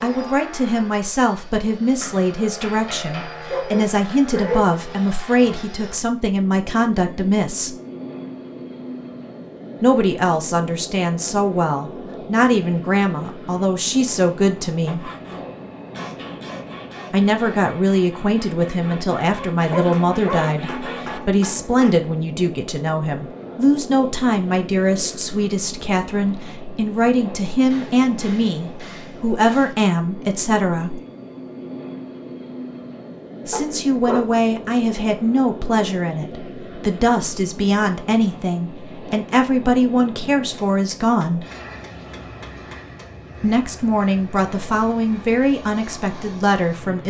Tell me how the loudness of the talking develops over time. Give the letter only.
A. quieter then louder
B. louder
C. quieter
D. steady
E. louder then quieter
D.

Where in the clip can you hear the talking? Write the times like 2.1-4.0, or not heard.
0.0-7.8, 9.8-15.1, 17.1-31.0, 33.5-41.5, 43.4-47.0.